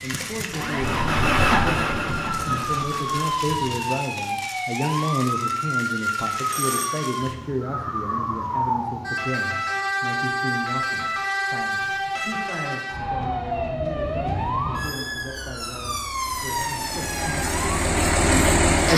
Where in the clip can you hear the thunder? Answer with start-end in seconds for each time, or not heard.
0.8-2.9.